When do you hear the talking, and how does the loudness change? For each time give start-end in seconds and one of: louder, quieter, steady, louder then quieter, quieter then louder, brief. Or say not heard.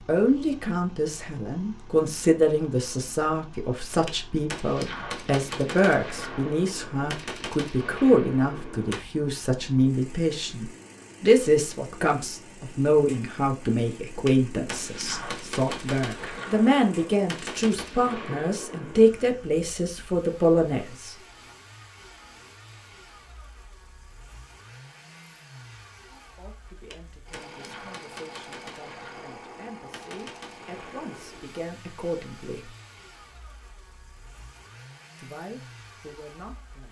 0.1-21.1 steady
26.1-32.8 louder
35.1-36.8 brief.